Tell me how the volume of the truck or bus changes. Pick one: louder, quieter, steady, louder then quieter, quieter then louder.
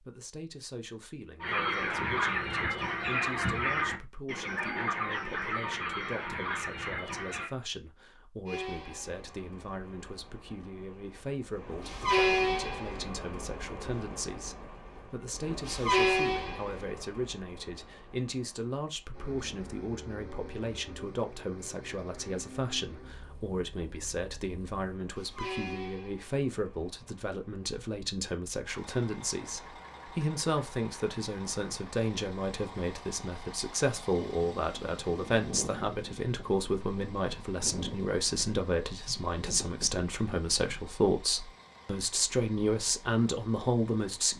quieter.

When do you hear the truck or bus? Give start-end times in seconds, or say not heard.
8.4-44.3.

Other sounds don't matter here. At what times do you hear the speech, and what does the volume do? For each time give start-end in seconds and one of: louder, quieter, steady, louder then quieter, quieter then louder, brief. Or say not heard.
0.0-44.3 louder.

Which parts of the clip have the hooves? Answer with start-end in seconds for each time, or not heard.
not heard.